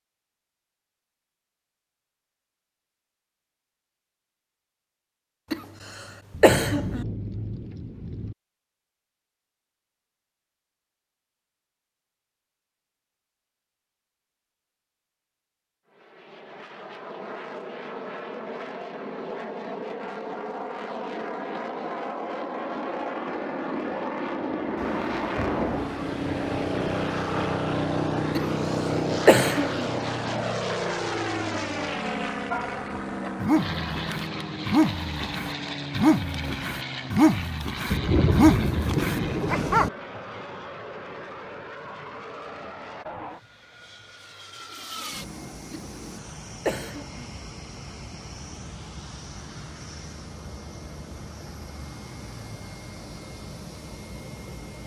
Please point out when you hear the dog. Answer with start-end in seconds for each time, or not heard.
32.5-39.9.